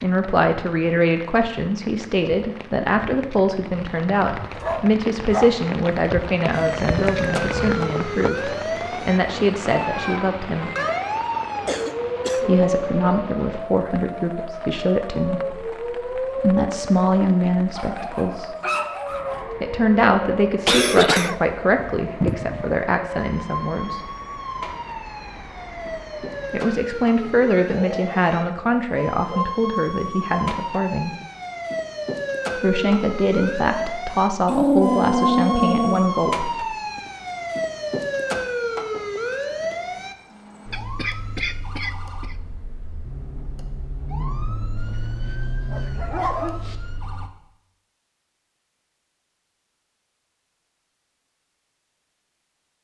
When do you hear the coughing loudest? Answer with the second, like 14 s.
21 s.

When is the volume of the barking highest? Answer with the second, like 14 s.
35 s.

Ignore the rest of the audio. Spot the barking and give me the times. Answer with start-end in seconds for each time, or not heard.
4.5-5.6, 17.8-19.5, 27.6-29.6, 34.5-36.0, 44.8-46.8.